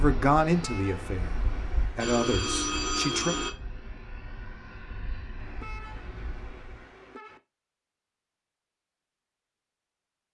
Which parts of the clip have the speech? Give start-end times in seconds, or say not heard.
0.0-1.4, 1.9-3.4.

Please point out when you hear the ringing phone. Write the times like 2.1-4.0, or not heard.
1.9-3.5.